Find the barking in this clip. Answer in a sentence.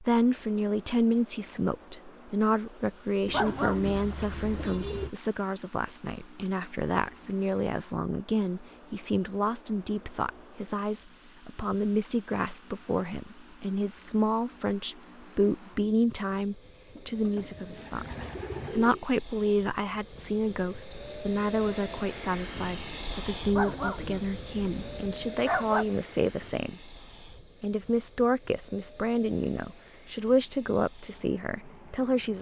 The barking can be heard from 3.3 to 4.7 s and from 23.6 to 25.9 s.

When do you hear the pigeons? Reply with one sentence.
You can hear the pigeons from 3.2 to 5.1 s and from 16.9 to 19.1 s.